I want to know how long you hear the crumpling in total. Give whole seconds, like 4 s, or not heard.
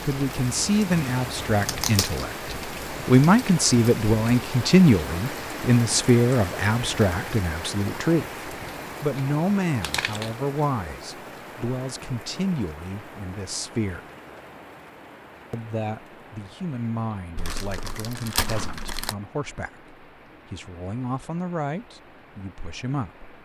3 s.